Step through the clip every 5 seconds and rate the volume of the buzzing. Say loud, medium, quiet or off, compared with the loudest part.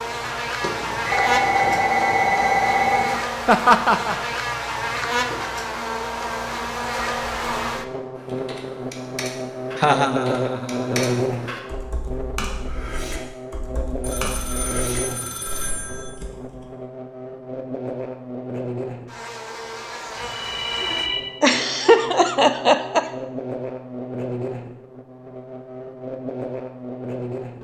loud, loud, loud, medium, medium, medium.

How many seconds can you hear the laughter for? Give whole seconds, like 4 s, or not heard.
4 s.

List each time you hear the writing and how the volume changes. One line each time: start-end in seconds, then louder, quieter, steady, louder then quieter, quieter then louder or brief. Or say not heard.
not heard.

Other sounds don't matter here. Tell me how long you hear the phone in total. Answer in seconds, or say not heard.
6 s.